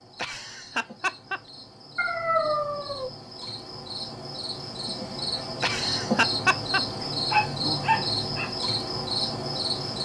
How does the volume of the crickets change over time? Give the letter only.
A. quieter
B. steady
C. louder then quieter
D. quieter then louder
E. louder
E.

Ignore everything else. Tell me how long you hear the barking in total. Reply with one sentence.
You can hear the barking for 2 seconds altogether.